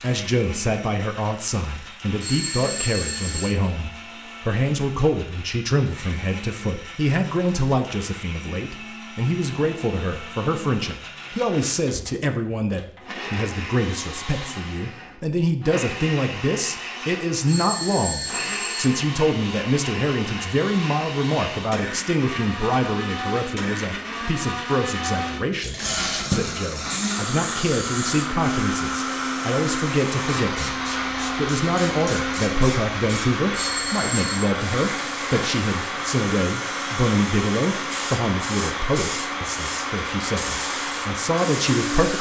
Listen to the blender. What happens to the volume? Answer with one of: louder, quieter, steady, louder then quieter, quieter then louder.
louder.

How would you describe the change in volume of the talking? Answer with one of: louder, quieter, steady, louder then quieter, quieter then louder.
steady.